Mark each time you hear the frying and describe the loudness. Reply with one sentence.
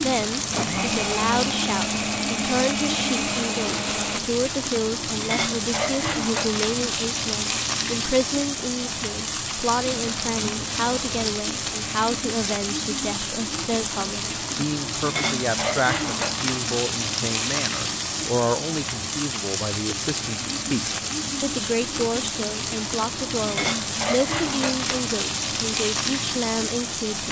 The frying can be heard from 0.0 to 27.2 s, at a steady volume.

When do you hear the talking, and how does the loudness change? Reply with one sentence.
The talking can be heard from 0.0 to 27.2 s, at a steady volume.